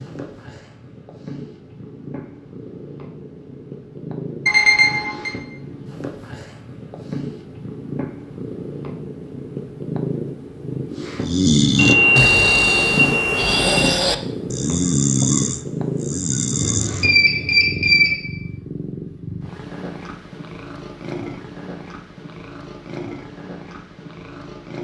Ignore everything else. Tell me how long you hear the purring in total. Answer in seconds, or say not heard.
25 s.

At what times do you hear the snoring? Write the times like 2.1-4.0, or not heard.
11.2-17.1.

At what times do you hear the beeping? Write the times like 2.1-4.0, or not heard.
4.5-5.3, 11.8-13.8, 16.6-18.1.